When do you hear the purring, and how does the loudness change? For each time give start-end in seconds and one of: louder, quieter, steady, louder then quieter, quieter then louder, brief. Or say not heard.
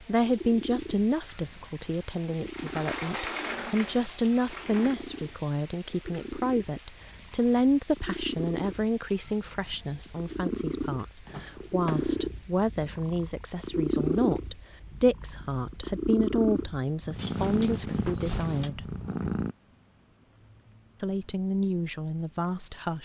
0.0-19.6 louder.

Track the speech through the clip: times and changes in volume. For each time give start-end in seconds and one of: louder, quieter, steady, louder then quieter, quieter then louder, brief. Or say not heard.
0.1-18.9 steady
21.0-22.9 brief.